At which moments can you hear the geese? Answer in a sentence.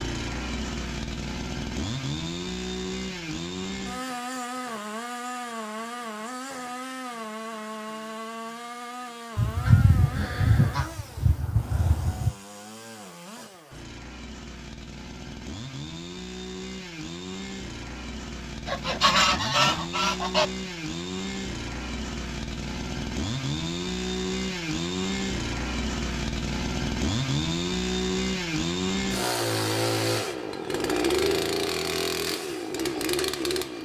The geese can be heard from 9.3 to 12.3 s and from 18.6 to 20.4 s.